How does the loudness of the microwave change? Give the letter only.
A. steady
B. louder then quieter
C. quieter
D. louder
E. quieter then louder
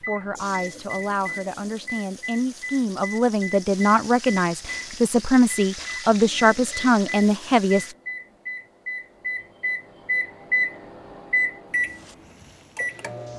D.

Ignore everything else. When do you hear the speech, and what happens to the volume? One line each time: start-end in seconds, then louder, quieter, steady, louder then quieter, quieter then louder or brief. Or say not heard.
0.0-8.0 louder.